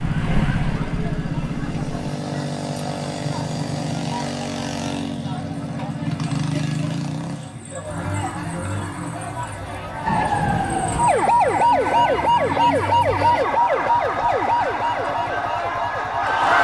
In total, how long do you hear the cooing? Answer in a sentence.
You can't hear the cooing here.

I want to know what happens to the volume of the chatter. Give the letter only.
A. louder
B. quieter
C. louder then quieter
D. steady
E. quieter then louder
A.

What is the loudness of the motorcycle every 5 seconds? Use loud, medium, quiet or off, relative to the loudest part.
loud, loud, quiet, quiet.